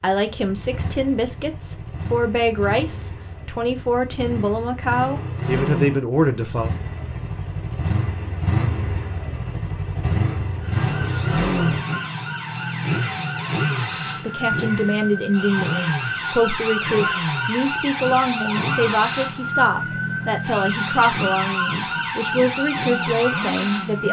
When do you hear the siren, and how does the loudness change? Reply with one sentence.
You can hear the siren from 10.6 to 24.0 s, getting louder.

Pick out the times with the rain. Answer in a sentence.
You can't hear the rain here.